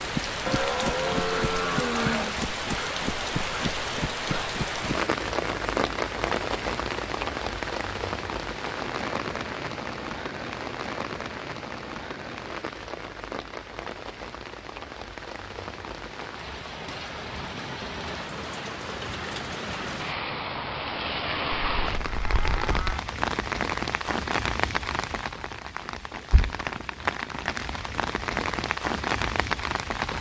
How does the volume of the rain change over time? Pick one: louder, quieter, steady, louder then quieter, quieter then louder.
quieter then louder.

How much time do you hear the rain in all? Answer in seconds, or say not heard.
30 s.